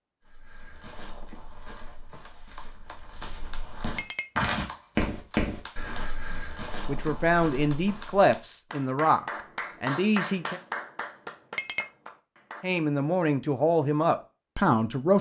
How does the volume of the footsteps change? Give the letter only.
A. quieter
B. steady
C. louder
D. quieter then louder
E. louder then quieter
E.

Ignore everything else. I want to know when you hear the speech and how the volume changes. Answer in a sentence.
You can hear the speech from 6.3 to 10.6 s, at a steady volume; and briefly from 12.6 to 15.1 s.